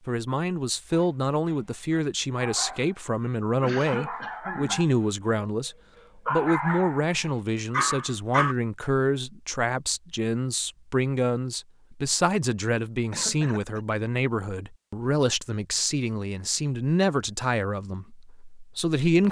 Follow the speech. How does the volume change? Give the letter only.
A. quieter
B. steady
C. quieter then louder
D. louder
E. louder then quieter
B.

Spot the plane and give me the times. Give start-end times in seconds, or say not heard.
not heard.